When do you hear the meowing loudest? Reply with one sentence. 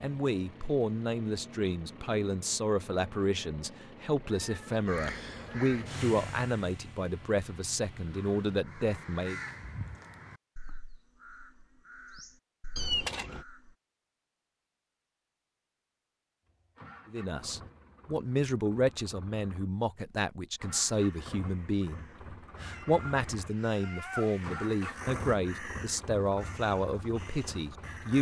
The volume of the meowing peaks at 13 seconds.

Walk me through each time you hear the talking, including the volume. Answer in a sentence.
The talking can be heard from 0.0 to 9.4 s, at a steady volume; and from 17.1 to 28.1 s, at a steady volume.